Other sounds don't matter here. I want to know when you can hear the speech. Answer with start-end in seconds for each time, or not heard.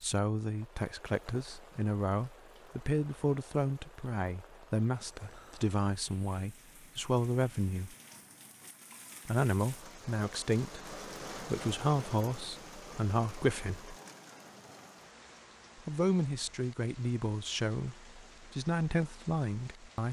0.0-8.0, 9.2-13.9, 15.8-20.0.